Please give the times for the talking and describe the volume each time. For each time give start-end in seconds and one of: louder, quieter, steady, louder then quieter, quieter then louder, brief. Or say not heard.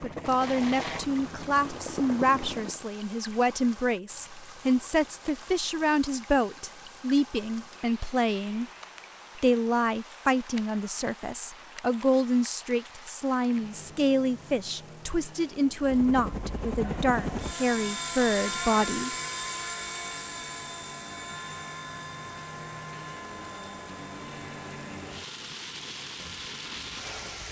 0.0-8.7 steady
9.3-19.1 steady.